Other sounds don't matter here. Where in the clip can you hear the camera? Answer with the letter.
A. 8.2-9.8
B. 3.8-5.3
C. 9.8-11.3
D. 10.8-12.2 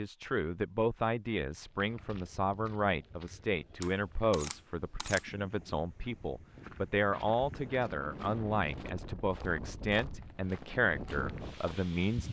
B.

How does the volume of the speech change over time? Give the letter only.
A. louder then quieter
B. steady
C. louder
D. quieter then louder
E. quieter
B.